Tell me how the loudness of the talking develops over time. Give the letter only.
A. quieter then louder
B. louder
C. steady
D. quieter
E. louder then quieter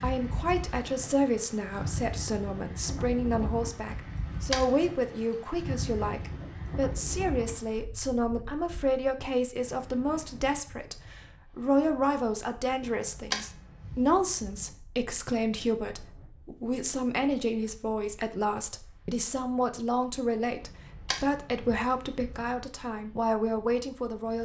C.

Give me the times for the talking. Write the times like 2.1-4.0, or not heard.
0.0-24.4.